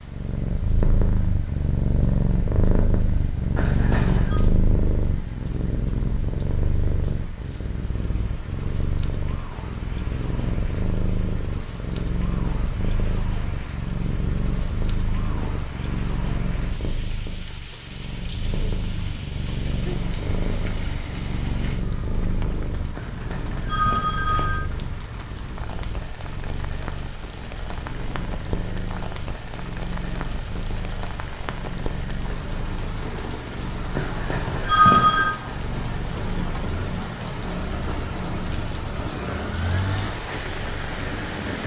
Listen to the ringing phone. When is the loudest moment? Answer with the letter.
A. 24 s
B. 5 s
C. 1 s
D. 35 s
D.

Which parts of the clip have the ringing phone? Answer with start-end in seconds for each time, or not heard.
3.5-4.4, 22.9-24.6, 34.0-35.3.